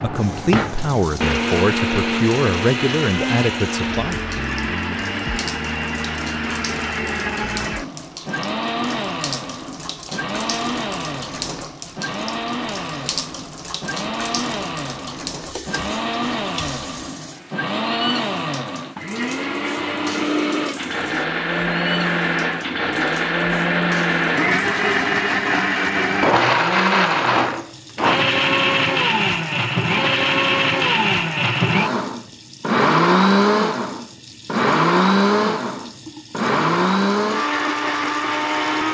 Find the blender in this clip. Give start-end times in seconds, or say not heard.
0.0-38.9.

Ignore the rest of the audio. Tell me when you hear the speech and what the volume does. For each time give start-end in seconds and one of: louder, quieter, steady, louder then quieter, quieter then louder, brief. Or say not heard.
0.0-4.2 steady.